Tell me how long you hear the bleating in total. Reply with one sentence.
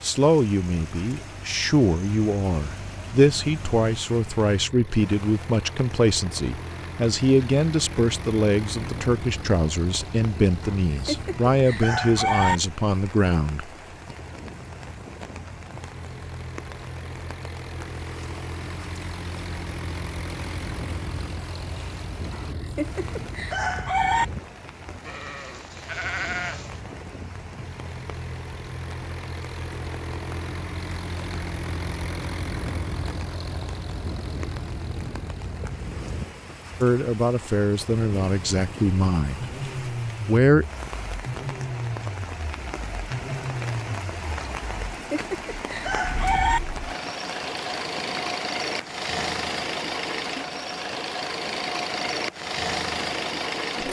The bleating can be heard for 2 seconds in total.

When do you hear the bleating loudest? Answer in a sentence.
The volume of the bleating peaks at 26 seconds.